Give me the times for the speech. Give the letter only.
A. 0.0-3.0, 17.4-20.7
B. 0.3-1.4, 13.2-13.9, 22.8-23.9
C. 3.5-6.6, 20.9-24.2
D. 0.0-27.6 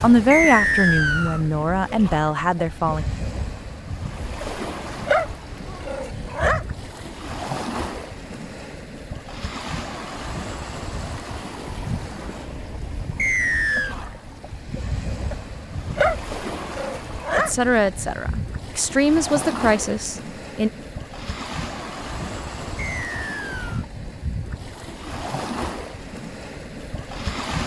A.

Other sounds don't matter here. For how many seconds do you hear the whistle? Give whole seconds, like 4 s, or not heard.
3 s.